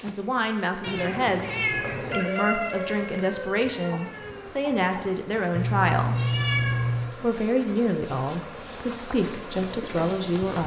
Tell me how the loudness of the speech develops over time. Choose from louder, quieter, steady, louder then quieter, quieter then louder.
steady.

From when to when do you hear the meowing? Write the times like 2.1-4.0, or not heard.
0.8-2.2, 5.5-7.2.